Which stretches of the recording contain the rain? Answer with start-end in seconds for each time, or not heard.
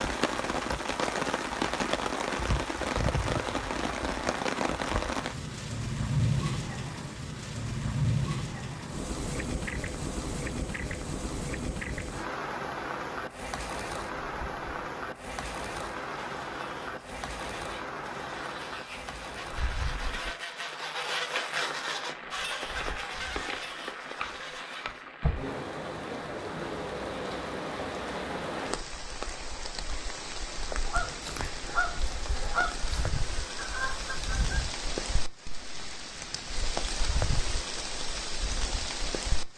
0.0-39.5.